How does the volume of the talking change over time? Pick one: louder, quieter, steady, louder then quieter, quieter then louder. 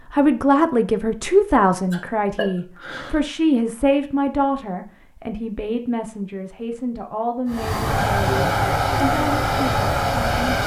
quieter.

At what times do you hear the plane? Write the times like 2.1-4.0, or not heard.
7.5-10.6.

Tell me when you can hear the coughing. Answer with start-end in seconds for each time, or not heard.
1.9-3.2.